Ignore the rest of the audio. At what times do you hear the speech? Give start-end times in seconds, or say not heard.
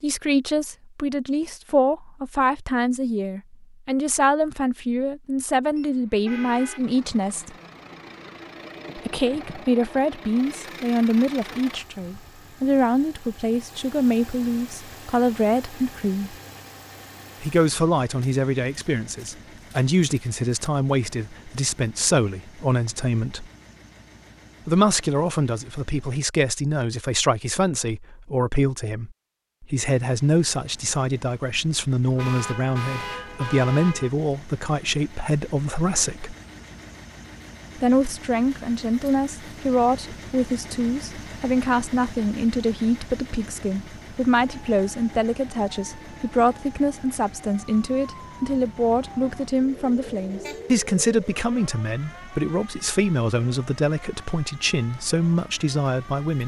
0.0-7.5, 8.9-16.4, 17.4-23.5, 24.6-36.4, 37.8-56.4.